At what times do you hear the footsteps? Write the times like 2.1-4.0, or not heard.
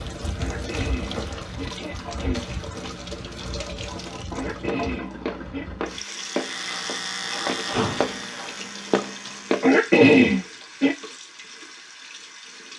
4.7-9.7.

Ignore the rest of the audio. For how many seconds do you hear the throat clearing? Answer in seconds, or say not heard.
5 s.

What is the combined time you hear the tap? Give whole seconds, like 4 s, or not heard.
13 s.